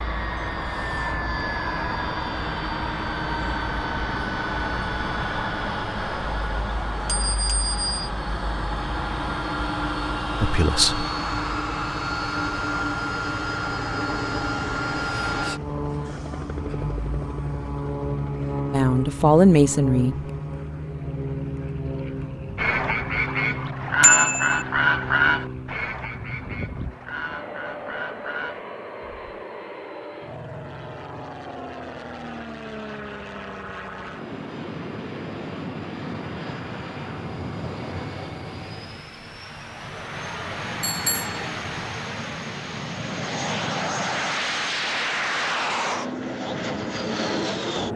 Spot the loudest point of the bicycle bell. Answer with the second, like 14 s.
24 s.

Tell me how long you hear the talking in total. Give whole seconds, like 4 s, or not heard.
2 s.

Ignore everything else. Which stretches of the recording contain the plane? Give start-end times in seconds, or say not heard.
0.0-47.9.